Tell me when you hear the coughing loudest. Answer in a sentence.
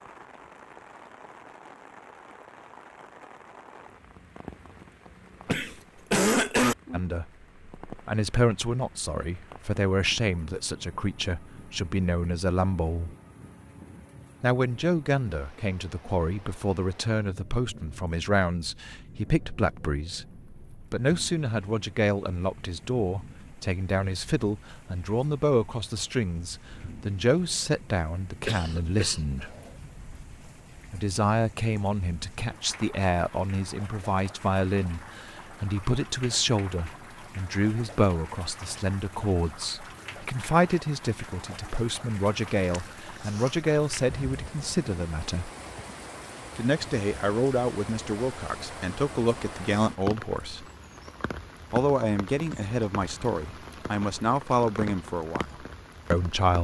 The volume of the coughing peaks at 6 seconds.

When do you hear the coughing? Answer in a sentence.
You can hear the coughing from 5.5 to 6.8 s, from 28.4 to 29.7 s and from 42.7 to 44.1 s.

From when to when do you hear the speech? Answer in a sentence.
You can hear the speech from 6.9 to 13.2 s, from 14.4 to 29.6 s, from 30.9 to 45.5 s, from 46.5 to 50.6 s and from 51.7 to 56.5 s.